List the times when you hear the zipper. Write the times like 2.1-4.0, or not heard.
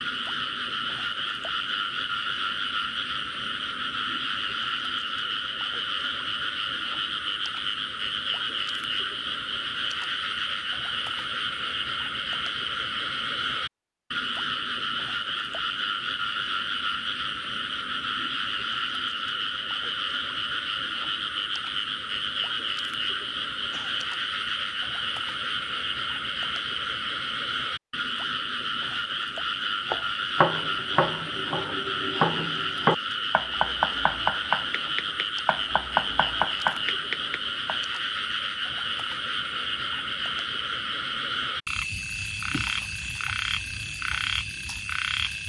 not heard.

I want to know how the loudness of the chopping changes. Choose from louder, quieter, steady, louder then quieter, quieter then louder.
quieter then louder.